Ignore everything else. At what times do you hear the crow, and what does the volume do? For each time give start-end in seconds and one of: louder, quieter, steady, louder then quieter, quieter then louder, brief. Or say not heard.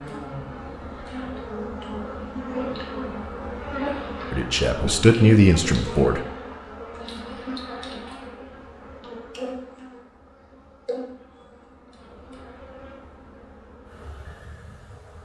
not heard.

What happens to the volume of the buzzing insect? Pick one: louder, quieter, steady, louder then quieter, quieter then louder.
quieter.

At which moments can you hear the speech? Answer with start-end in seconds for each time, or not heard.
4.3-6.2.